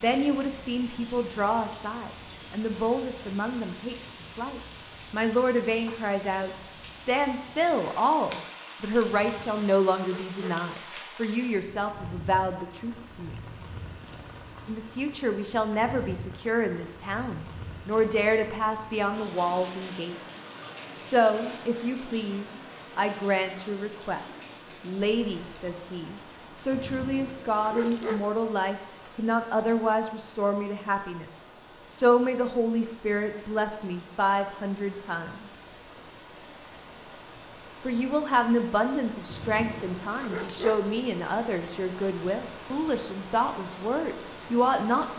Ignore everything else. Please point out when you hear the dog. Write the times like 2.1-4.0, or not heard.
9.1-10.6, 26.7-28.2, 39.3-40.8.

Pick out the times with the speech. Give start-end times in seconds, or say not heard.
0.0-13.3, 14.7-20.1, 21.0-35.6, 37.9-45.1.